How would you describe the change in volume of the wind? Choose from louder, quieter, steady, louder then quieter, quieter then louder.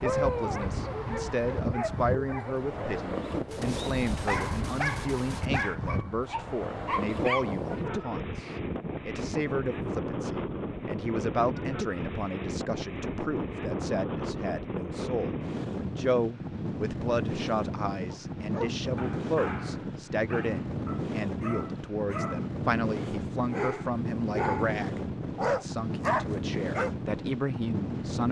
steady.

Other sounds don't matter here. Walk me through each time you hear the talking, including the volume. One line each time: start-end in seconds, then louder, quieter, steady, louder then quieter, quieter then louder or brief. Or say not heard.
0.0-28.2 steady.